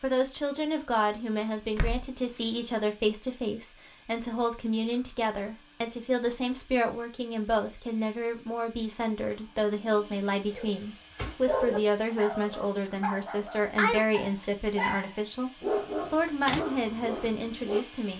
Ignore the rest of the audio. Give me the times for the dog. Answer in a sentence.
You can hear the dog from 10.5 to 18.1 s.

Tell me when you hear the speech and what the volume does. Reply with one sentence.
You can hear the speech from 0.0 to 15.5 s, at a steady volume; and briefly from 16.1 to 18.1 s.